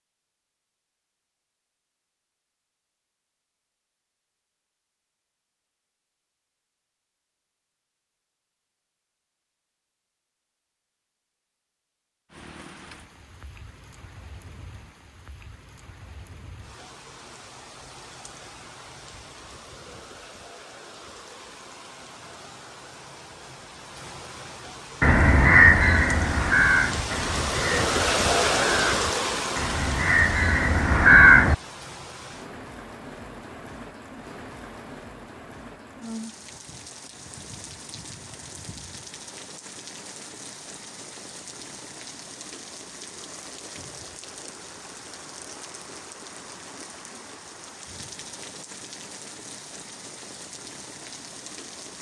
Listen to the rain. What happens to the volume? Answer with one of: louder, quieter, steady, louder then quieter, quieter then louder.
louder then quieter.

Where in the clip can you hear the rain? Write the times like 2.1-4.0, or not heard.
12.3-51.9.